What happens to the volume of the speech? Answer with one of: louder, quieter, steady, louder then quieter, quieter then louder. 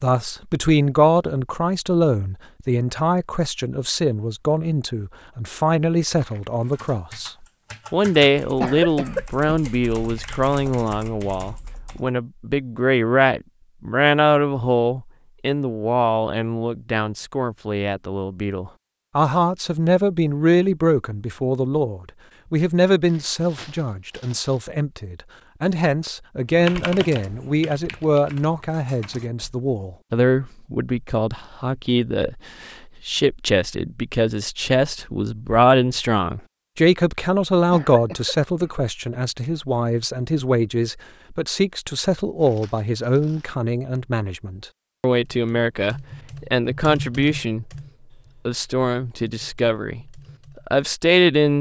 steady.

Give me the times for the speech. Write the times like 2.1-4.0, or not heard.
0.0-47.6, 48.5-51.5.